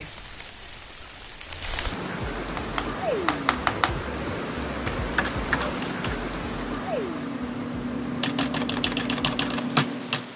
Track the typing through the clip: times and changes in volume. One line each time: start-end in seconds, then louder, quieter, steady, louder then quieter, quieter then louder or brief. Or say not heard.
2.4-10.2 quieter then louder.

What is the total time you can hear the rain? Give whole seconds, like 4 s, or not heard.
10 s.